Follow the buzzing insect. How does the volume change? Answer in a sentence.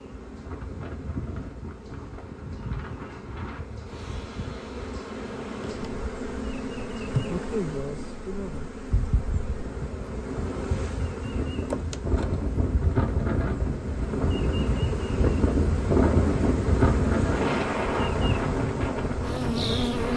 The loudness of the buzzing insect goes up.